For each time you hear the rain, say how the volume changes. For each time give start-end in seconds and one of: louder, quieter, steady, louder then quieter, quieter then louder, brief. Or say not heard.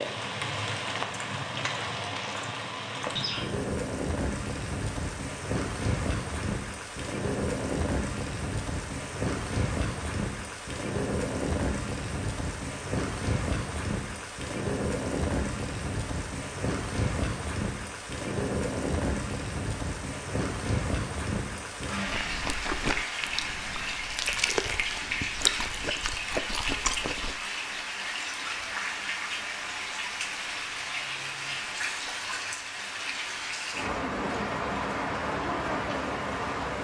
0.0-36.7 steady.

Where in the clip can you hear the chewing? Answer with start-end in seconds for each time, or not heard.
22.1-27.4.